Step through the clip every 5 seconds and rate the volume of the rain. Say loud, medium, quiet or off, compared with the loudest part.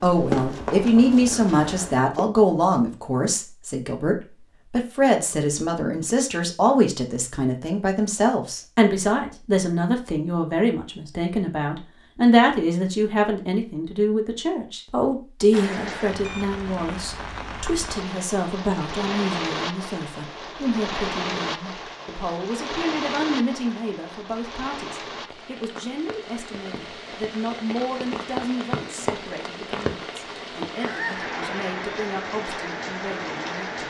off, off, off, loud, loud, loud, loud.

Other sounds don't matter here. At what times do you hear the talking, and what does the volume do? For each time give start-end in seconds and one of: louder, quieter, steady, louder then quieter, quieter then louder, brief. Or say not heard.
0.0-33.8 quieter.